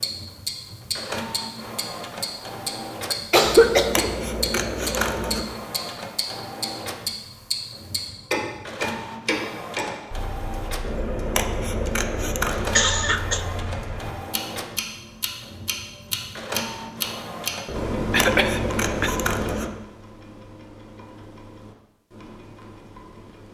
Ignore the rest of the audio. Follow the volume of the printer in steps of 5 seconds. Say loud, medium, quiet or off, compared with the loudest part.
loud, loud, loud, loud, off.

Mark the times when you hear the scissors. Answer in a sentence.
You can hear the scissors from 3.4 to 5.5 s, from 10.8 to 12.8 s and from 17.6 to 19.7 s.